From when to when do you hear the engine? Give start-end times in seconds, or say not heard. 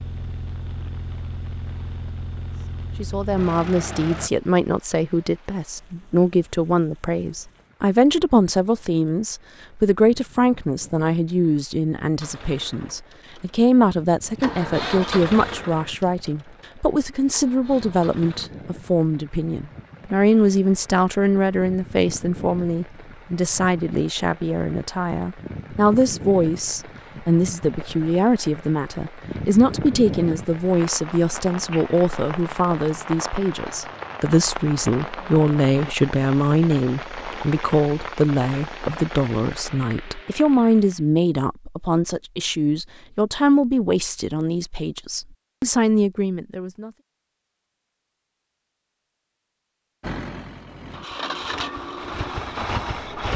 0.0-4.3, 12.2-18.5, 50.0-53.3.